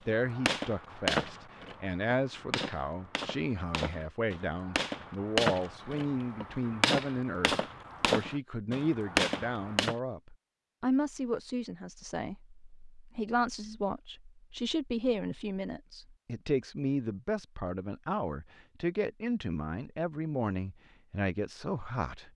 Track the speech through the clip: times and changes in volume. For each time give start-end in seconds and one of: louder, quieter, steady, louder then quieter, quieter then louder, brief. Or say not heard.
0.1-22.3 steady.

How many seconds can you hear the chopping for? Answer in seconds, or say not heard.
10 s.